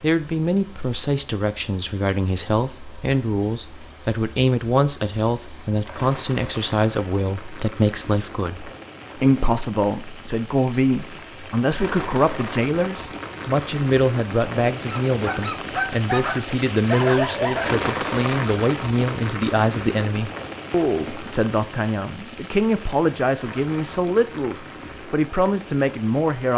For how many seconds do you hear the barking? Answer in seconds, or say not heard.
3 s.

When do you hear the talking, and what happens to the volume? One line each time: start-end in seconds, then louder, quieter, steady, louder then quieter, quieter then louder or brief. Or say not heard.
0.0-26.5 steady.